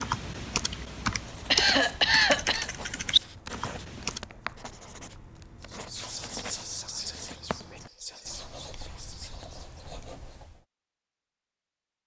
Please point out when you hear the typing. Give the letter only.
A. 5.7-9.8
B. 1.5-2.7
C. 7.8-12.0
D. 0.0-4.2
D.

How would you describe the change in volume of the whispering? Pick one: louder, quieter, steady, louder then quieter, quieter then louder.
quieter.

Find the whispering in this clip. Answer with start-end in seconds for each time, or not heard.
5.7-9.8.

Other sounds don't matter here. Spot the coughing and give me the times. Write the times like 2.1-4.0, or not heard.
1.5-2.7.